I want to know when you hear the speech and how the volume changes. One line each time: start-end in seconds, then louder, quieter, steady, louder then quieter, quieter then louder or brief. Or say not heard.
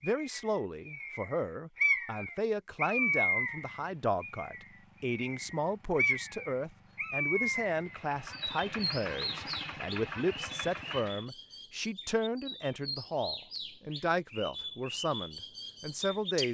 0.0-16.4 steady.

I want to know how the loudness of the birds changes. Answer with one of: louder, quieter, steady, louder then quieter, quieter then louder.
quieter.